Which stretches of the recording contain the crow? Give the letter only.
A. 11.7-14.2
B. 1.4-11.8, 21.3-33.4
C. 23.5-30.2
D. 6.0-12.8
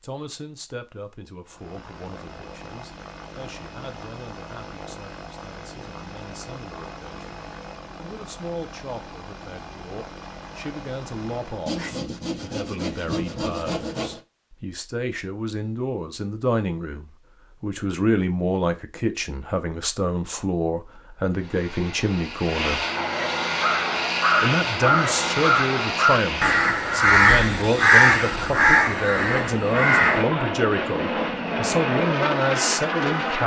C.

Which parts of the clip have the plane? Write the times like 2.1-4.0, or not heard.
1.4-11.8, 21.3-33.4.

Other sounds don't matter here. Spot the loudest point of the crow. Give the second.
28 s.